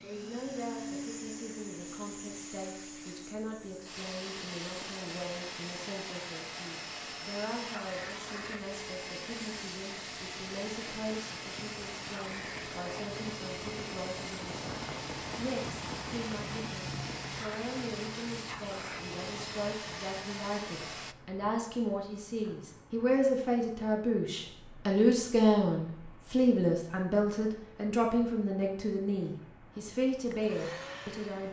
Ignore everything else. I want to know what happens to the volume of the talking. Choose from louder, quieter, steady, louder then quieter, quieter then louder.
louder.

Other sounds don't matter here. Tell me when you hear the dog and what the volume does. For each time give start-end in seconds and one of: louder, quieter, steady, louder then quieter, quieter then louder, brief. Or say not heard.
not heard.